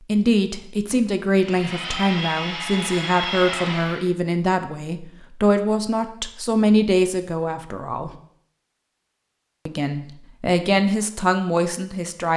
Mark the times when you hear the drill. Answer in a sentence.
The drill can be heard from 1.4 to 4.1 s.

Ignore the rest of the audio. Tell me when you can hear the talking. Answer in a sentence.
The talking can be heard from 0.1 to 8.2 s and from 9.7 to 12.3 s.